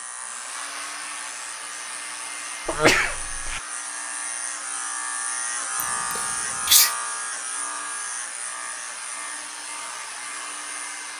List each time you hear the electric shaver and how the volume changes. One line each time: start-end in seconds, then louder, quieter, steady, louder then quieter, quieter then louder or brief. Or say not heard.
0.0-11.1 louder then quieter.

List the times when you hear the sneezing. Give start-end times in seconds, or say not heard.
2.6-3.6, 5.8-7.0.